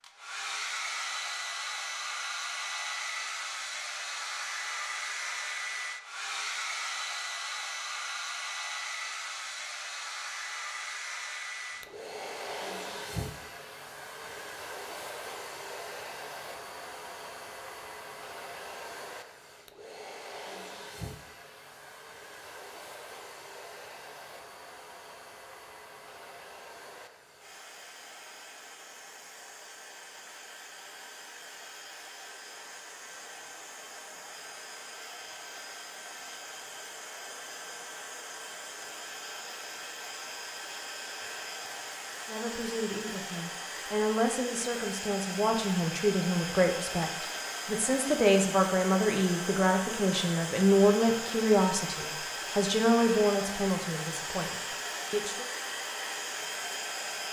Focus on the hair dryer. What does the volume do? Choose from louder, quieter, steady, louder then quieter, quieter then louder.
quieter then louder.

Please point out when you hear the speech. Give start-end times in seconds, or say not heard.
42.2-55.5.